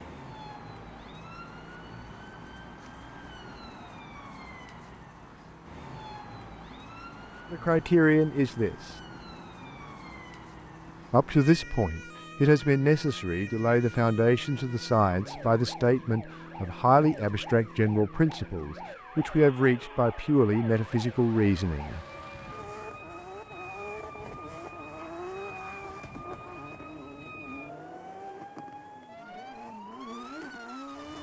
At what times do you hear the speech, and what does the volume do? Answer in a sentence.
You can hear the speech briefly from 7.5 to 8.9 s; and from 11.1 to 22.1 s, at a steady volume.